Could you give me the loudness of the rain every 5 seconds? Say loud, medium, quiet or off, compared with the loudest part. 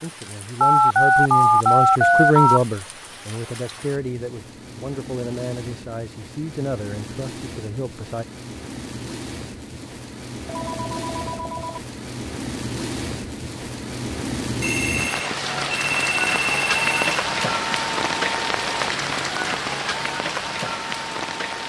quiet, quiet, medium, loud, loud.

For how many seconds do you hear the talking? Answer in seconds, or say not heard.
8 s.